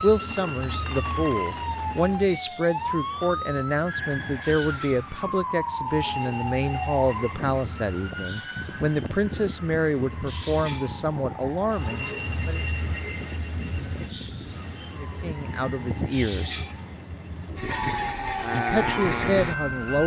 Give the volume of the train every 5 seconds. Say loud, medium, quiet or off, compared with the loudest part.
medium, medium, loud, loud.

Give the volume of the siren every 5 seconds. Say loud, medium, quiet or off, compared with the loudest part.
loud, loud, medium, loud.